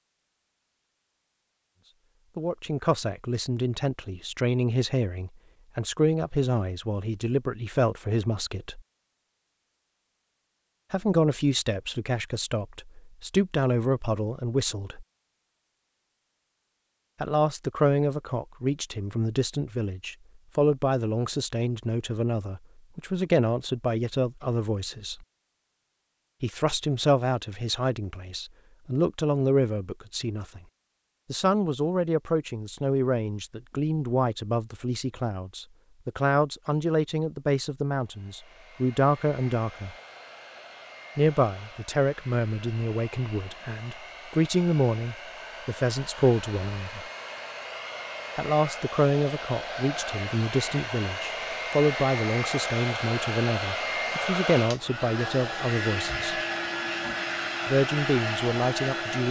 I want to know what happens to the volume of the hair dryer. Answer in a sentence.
The volume of the hair dryer goes up.